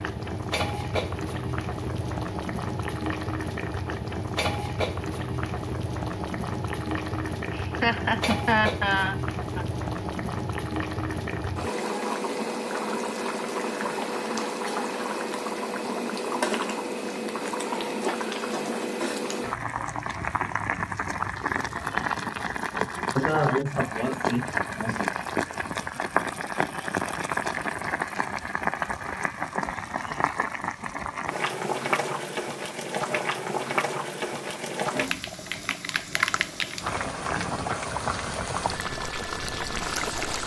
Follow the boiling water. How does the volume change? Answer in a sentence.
The loudness of the boiling water stays about the same.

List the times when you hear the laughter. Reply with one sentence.
You can hear the laughter from 7.5 to 9.7 s and from 23.1 to 25.1 s.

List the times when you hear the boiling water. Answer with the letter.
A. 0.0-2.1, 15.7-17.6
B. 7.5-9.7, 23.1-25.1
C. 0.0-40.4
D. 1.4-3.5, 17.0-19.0
C.